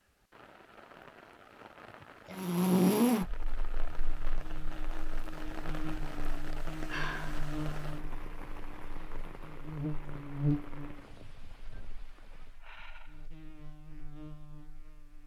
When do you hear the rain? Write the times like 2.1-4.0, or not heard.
0.0-12.7.